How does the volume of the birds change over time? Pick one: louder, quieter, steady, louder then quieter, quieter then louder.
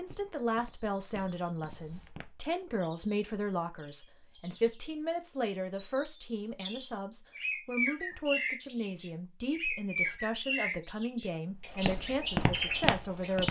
louder.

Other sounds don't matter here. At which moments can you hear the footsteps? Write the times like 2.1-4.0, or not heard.
0.0-2.3, 11.8-13.4.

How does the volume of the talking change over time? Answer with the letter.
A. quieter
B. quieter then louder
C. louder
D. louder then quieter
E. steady
E.